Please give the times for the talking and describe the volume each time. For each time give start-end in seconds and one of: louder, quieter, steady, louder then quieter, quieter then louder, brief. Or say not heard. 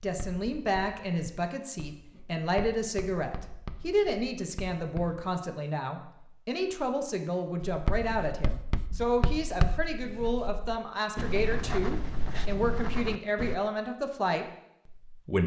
0.0-15.4 steady.